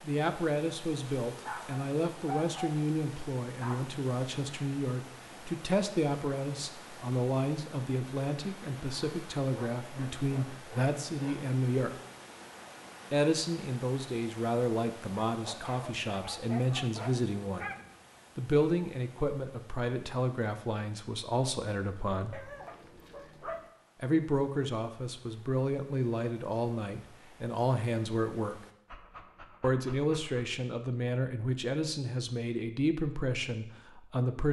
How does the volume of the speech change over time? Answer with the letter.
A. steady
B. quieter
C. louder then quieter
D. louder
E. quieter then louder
A.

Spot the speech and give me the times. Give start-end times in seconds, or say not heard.
0.0-11.9, 13.1-17.7, 18.4-22.4, 24.0-28.6, 29.6-34.4.